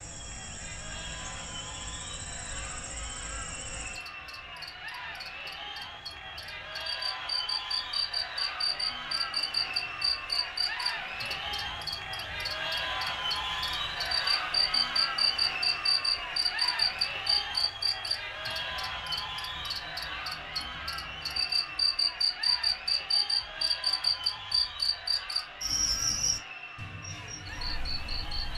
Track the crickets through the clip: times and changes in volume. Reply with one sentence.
You can hear the crickets from 0.0 to 28.5 s, getting louder.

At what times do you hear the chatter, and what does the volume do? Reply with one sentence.
The chatter can be heard from 0.0 to 28.5 s, getting louder then quieter.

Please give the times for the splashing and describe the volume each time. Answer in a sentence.
You can't hear the splashing here.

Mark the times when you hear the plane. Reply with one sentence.
You can't hear the plane here.